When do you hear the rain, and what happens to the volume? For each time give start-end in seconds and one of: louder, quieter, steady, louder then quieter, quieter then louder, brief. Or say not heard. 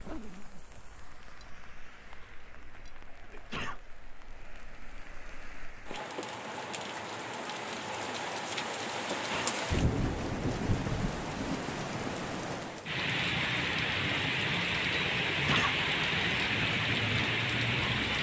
0.0-18.1 louder.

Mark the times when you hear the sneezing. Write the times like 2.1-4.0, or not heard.
3.2-3.8, 9.1-9.6, 15.3-15.8.